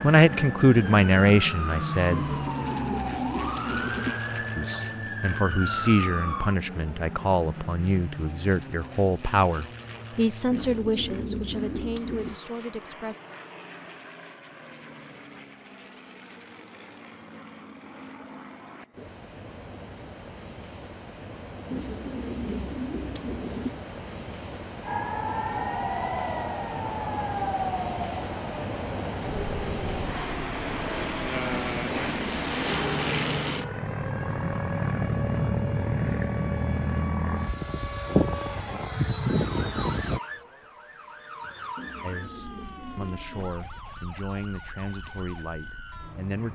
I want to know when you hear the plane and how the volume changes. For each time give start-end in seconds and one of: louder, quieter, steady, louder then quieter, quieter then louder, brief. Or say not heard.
0.0-40.2 quieter then louder.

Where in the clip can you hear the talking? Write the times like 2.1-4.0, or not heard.
0.0-2.2, 4.5-13.2, 42.0-46.5.